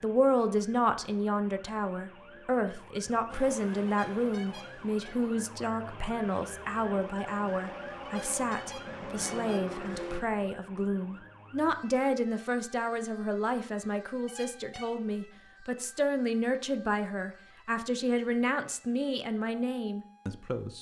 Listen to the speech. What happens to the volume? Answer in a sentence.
The volume of the speech stays about the same.